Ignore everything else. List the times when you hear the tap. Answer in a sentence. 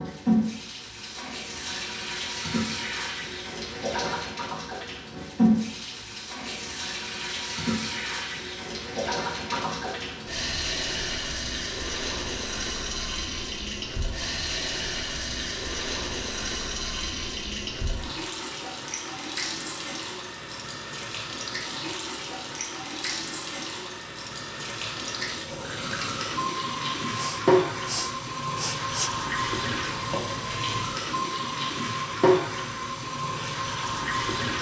The tap can be heard from 0.0 to 34.5 s.